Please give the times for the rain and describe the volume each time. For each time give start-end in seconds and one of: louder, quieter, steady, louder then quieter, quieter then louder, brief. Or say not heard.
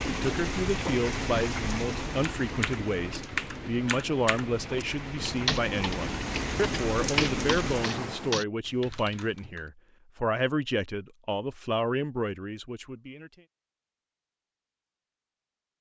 0.0-8.4 quieter then louder.